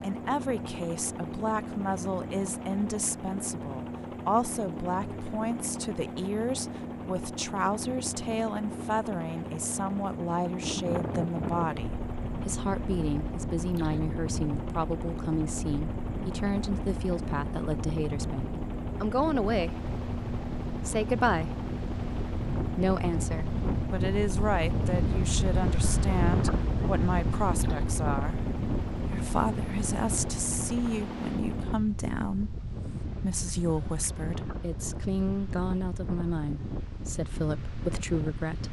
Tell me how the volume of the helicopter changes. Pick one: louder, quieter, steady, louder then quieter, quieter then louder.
steady.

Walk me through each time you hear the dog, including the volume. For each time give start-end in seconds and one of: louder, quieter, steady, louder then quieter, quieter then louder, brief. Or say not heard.
not heard.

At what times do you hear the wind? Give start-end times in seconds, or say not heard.
10.6-38.6.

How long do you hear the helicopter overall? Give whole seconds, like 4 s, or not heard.
32 s.